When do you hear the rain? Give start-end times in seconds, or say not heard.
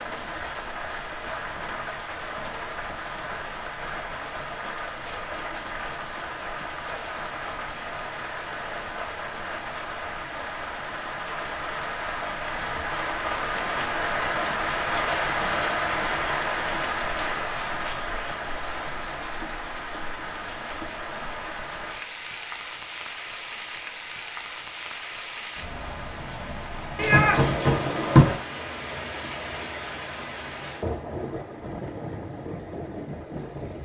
0.0-33.8.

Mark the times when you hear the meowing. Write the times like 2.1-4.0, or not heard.
26.9-28.4.